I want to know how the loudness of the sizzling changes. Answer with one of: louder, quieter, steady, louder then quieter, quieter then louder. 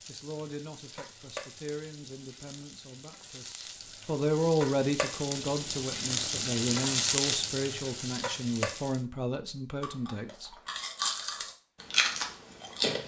louder.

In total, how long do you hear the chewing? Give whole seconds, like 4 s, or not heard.
3 s.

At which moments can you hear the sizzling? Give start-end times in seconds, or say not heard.
0.0-9.1.